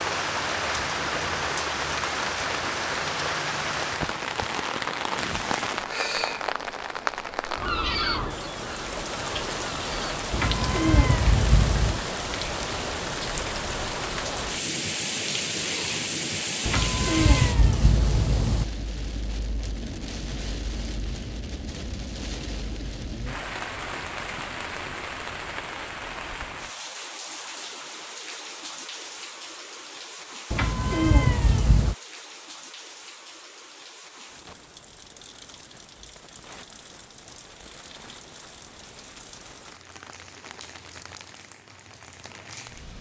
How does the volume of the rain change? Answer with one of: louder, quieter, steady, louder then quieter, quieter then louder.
quieter.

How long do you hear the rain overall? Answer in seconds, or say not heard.
43 s.